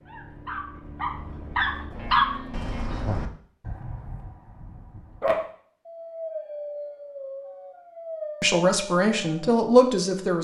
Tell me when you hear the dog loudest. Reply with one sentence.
The loudest moment of the dog is at 2 seconds.